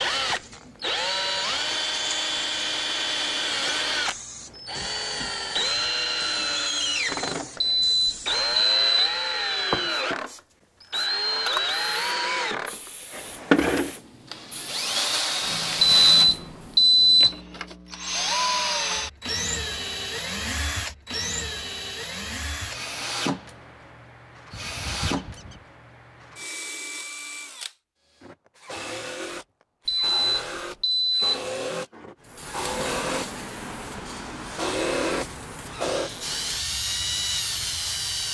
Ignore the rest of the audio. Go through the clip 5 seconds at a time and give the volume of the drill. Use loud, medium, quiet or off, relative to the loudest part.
loud, loud, loud, loud, medium, medium, medium, loud.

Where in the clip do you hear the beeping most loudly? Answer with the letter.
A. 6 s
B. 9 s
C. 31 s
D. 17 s
D.